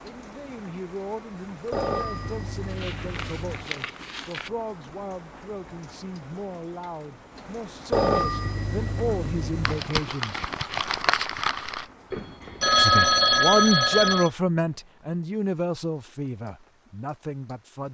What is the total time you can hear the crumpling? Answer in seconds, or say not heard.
4 s.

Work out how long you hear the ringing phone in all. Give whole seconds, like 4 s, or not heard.
6 s.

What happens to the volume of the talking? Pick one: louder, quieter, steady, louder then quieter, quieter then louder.
louder then quieter.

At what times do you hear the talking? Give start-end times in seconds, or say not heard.
0.0-10.4, 12.8-17.8.